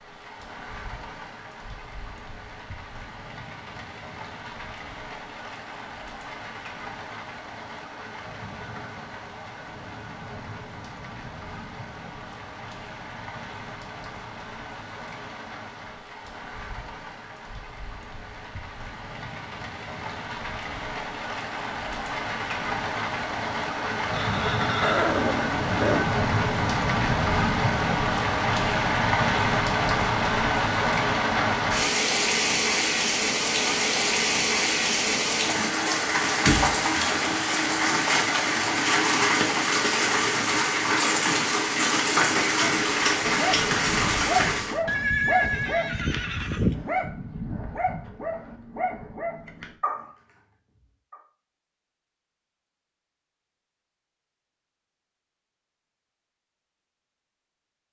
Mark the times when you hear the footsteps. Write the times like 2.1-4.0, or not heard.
not heard.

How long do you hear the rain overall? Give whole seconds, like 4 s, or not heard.
45 s.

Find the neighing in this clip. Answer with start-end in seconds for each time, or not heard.
24.1-26.1, 44.9-46.9.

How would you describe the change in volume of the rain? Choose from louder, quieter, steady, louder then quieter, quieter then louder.
louder.